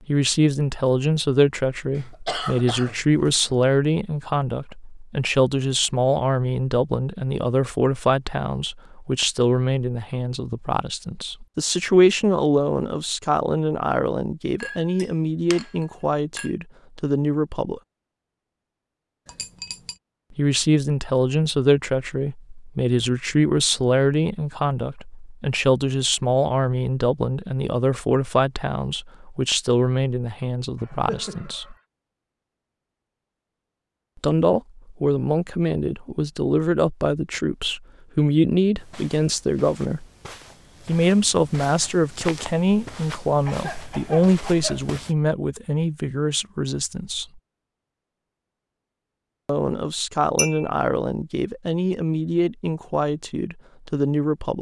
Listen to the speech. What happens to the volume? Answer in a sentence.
The volume of the speech stays about the same.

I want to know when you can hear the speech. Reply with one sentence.
You can hear the speech from 0.1 to 17.8 s, from 20.4 to 31.8 s, from 34.2 to 40.0 s, from 40.9 to 47.2 s and from 49.5 to 54.5 s.